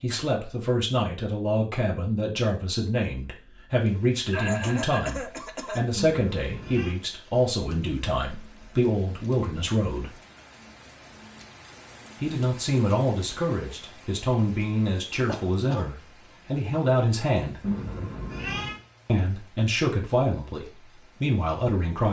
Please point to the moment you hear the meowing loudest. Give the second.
18 s.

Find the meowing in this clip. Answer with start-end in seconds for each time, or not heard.
6.0-7.0, 17.6-18.8.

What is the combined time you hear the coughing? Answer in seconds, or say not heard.
2 s.